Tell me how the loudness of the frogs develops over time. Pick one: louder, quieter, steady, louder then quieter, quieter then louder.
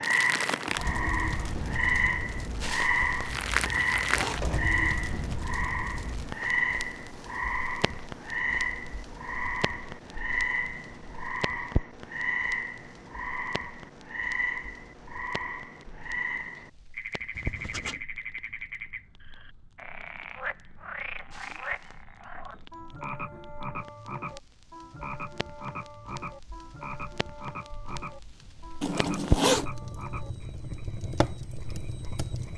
quieter.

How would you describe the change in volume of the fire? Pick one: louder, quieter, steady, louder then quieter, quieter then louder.
quieter then louder.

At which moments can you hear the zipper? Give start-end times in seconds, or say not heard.
3.0-4.8, 17.4-18.0, 28.8-29.6.